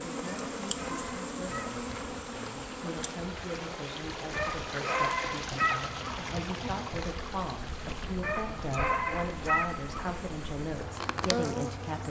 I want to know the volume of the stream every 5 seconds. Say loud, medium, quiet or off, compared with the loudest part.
loud, loud, medium.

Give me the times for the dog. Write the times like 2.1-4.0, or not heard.
0.2-1.8, 4.3-6.3, 8.2-10.2.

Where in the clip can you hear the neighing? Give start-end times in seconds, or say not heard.
not heard.